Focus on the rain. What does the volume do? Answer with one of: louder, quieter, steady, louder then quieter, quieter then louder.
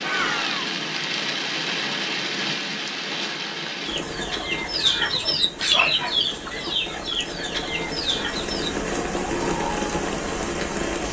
quieter then louder.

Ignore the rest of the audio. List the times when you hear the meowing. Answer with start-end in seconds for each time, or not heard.
0.0-0.7.